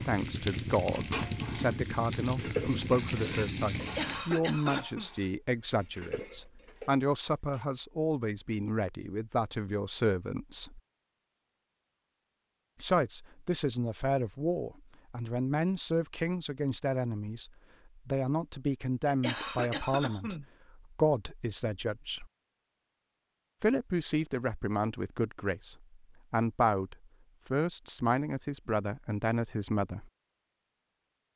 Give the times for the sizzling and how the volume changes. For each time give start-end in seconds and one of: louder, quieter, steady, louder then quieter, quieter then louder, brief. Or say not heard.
0.0-4.3 steady.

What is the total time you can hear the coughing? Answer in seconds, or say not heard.
3 s.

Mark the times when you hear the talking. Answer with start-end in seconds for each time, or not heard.
0.1-10.8, 12.8-22.2, 23.6-30.1.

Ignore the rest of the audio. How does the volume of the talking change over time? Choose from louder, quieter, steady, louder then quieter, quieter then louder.
steady.